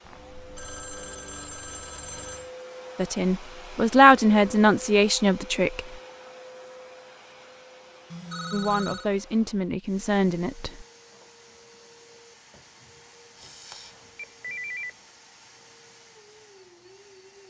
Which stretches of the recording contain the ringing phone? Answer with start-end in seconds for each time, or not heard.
0.0-2.5, 8.1-9.1, 13.3-14.9.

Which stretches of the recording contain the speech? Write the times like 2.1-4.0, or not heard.
3.0-5.8, 8.5-10.8.